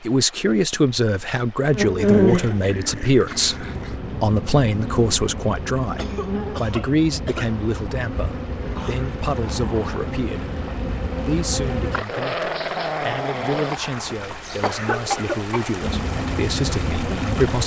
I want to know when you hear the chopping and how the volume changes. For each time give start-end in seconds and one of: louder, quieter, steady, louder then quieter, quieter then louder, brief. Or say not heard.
not heard.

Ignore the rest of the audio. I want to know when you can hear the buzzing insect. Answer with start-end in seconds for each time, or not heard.
1.7-12.1, 15.8-17.6.